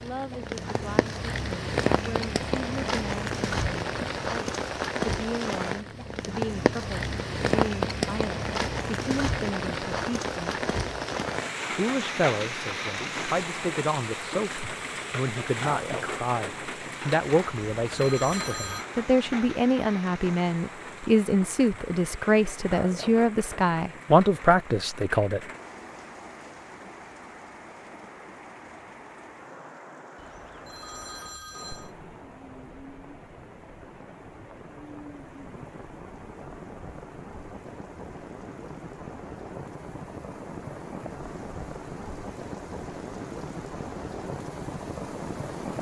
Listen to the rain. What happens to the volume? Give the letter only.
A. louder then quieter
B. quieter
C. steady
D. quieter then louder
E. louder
D.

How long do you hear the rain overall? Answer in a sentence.
You can hear the rain for 46 seconds altogether.